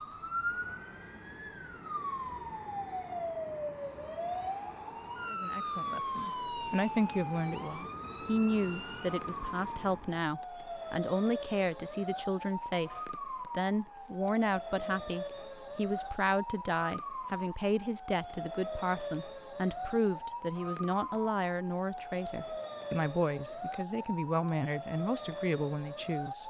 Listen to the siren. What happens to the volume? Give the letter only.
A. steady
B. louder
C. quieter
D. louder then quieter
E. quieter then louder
A.